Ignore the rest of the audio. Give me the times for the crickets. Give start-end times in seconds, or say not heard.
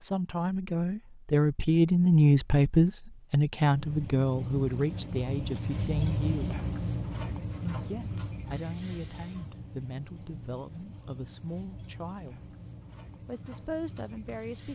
3.6-14.7.